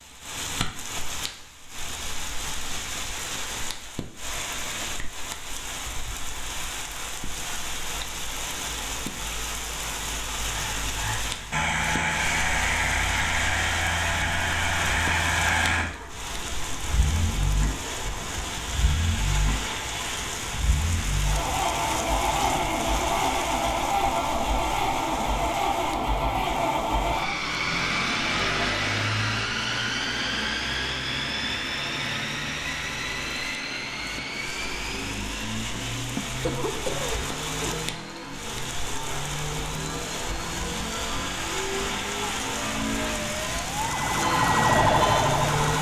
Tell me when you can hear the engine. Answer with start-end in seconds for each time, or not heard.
10.4-45.7.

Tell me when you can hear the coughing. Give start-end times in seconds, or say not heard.
35.6-37.9.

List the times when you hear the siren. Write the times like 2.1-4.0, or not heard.
42.4-45.7.